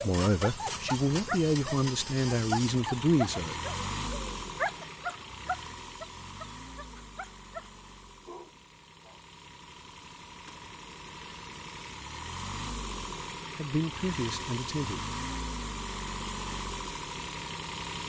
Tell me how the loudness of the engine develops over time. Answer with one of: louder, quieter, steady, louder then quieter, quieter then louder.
quieter then louder.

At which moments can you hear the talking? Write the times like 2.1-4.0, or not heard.
0.0-3.5, 13.6-15.1.